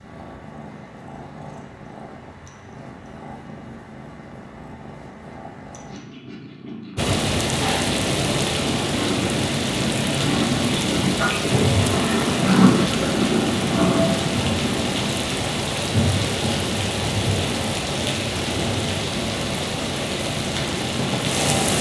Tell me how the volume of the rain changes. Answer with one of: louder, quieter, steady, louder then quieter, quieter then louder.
steady.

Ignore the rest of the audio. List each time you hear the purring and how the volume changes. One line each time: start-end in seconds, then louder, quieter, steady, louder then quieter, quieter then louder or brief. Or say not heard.
0.0-15.2 louder.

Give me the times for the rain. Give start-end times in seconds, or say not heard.
7.0-21.7.